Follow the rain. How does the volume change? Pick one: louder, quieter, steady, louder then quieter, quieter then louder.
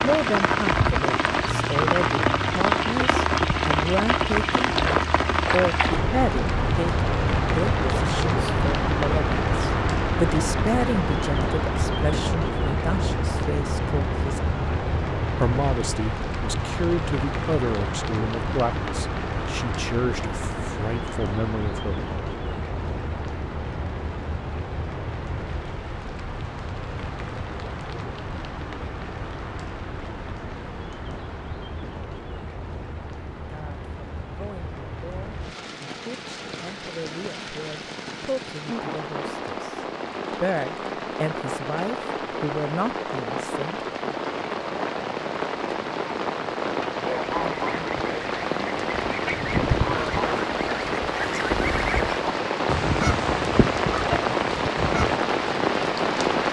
quieter then louder.